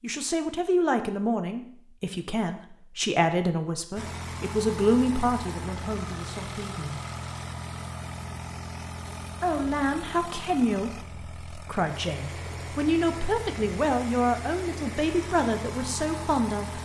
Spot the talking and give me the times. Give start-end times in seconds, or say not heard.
0.0-7.0, 9.4-16.8.